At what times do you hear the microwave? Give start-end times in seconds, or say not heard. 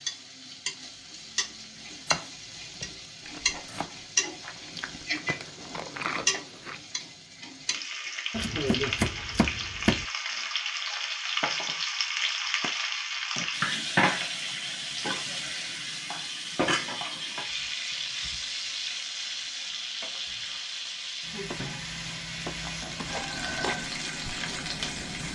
not heard.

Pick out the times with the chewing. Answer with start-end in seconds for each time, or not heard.
3.2-6.8, 22.6-25.3.